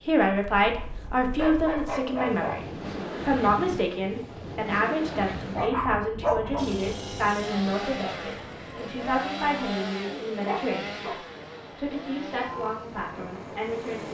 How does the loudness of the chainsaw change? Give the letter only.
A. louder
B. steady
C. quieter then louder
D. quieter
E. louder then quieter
D.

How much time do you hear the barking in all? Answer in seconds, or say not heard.
4 s.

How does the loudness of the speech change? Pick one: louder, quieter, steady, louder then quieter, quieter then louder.
quieter.